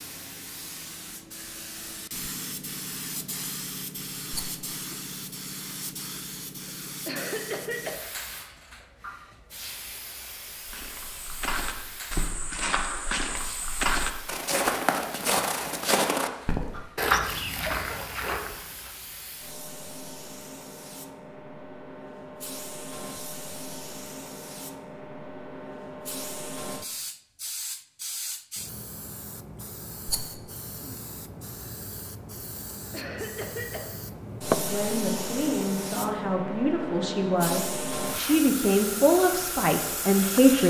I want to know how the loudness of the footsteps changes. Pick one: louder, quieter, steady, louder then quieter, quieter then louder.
louder.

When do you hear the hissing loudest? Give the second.
35 s.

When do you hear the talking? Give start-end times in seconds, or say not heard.
34.5-40.6.